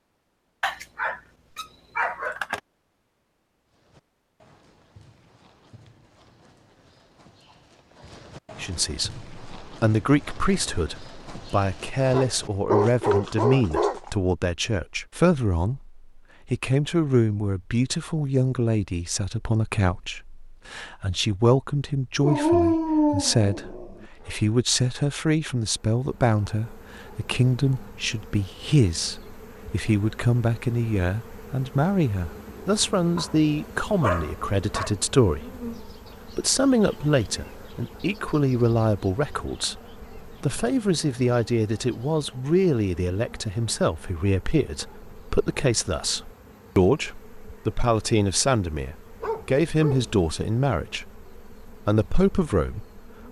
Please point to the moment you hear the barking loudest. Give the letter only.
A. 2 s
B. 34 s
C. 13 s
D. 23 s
D.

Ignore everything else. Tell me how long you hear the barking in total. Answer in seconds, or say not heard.
9 s.